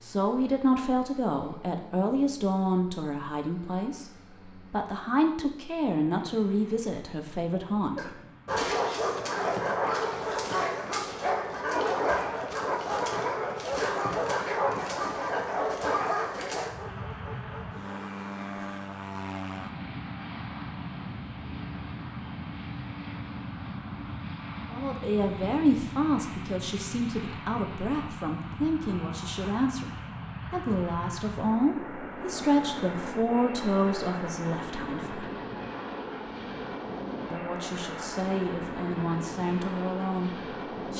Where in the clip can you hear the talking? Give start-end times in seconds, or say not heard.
0.0-8.2, 24.7-35.2, 37.3-40.9.